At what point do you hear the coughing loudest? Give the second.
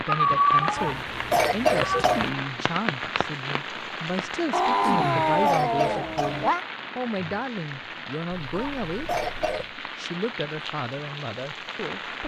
2 s.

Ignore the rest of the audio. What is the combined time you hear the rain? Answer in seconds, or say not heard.
12 s.